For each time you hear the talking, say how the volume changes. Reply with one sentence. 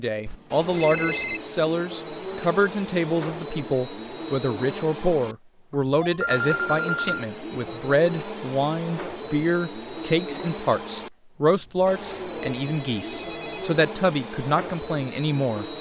The talking can be heard from 0.0 to 15.7 s, at a steady volume.